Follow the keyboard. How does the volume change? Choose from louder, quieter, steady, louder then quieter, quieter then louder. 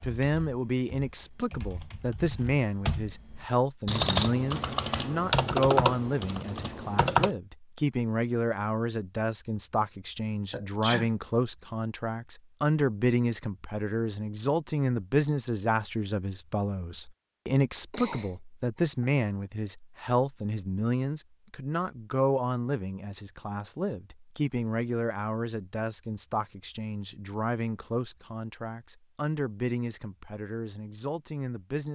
louder.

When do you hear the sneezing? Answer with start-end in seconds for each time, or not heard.
10.5-11.1, 17.9-19.1.